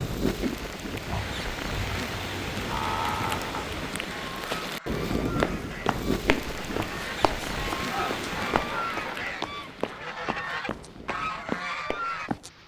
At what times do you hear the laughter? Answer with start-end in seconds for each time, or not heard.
2.6-3.7, 7.8-9.2.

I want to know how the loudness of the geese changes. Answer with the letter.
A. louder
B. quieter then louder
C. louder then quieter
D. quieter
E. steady
A.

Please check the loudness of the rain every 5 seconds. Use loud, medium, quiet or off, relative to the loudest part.
loud, loud, quiet.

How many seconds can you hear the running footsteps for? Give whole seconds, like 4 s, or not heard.
7 s.